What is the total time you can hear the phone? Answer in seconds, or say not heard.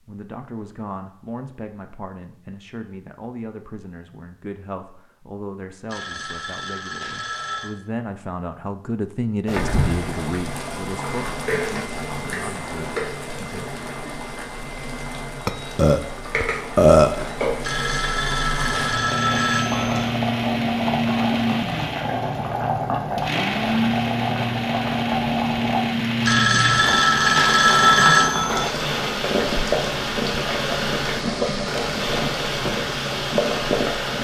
7 s.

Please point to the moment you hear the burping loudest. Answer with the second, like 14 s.
17 s.